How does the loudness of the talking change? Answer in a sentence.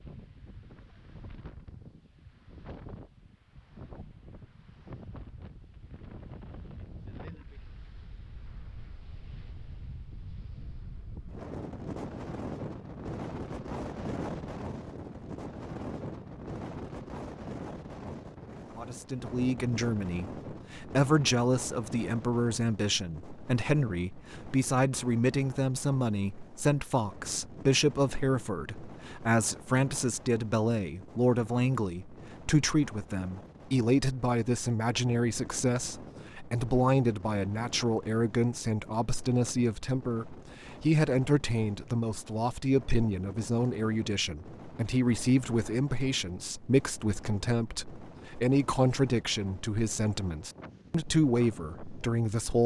The volume of the talking stays about the same.